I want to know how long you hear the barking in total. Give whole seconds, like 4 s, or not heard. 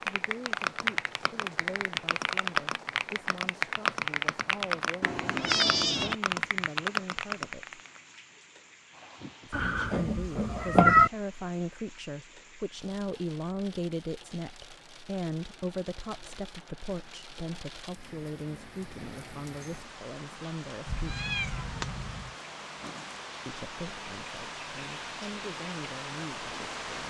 not heard.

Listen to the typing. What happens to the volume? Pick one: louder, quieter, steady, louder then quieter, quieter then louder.
steady.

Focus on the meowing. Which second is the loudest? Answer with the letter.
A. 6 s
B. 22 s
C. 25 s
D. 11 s
D.